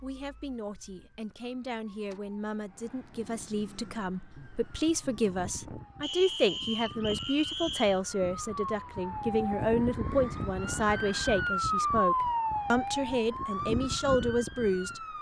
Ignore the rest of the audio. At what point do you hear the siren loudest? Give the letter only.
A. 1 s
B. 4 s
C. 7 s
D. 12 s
D.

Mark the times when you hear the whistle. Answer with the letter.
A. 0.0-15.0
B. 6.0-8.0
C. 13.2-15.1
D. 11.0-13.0
B.